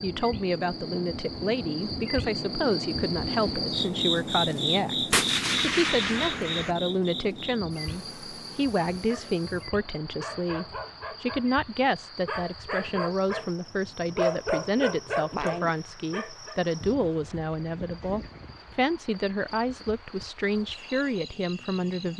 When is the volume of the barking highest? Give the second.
14 s.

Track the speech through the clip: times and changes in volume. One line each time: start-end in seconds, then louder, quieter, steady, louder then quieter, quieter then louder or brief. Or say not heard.
0.0-22.1 steady.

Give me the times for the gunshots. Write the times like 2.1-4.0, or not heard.
5.1-6.8.